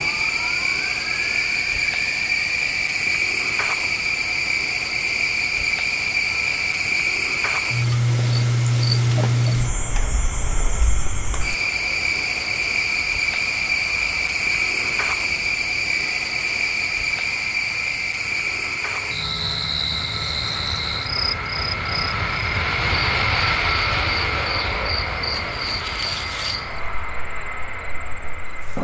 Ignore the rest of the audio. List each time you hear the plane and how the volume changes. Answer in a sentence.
The plane can be heard from 0.0 to 28.7 s, getting louder.